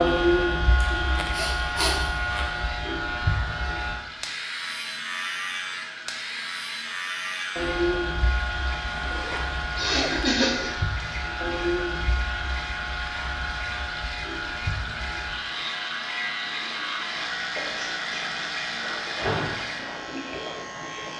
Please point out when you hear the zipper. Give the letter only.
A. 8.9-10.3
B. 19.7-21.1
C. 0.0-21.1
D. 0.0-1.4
A.